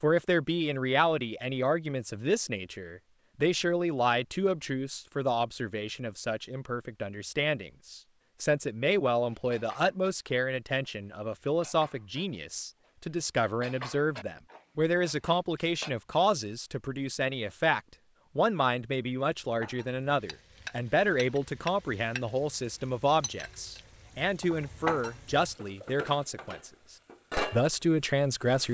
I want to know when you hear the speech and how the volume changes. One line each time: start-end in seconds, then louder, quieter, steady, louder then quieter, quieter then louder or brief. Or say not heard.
0.0-28.6 steady.